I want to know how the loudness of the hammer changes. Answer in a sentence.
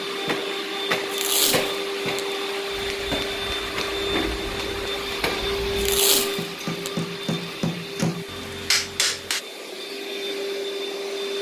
The loudness of the hammer goes up.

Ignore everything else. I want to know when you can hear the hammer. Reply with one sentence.
The hammer can be heard from 2.7 to 9.4 s.